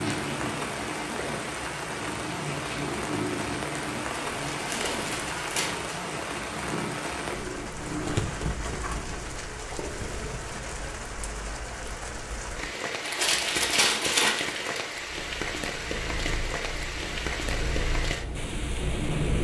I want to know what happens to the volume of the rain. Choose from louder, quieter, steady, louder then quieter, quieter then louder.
steady.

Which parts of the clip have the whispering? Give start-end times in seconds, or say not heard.
not heard.